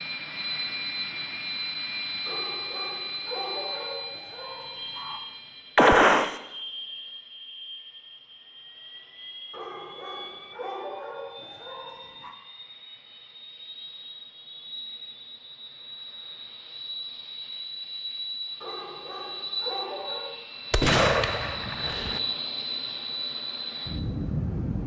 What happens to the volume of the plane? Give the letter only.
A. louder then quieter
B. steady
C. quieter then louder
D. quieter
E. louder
C.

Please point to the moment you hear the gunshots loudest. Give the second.
6 s.